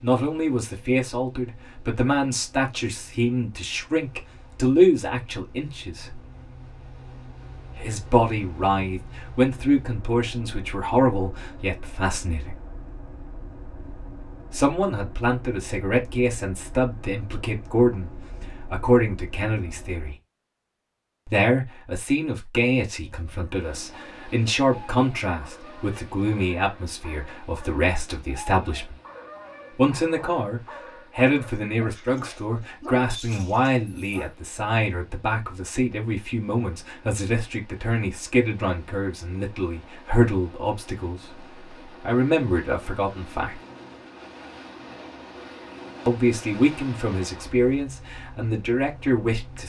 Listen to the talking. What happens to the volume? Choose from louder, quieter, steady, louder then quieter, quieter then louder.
steady.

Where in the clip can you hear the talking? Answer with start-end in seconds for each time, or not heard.
0.0-6.2, 7.7-12.6, 14.5-20.1, 21.2-28.9, 29.8-43.6, 46.0-49.6.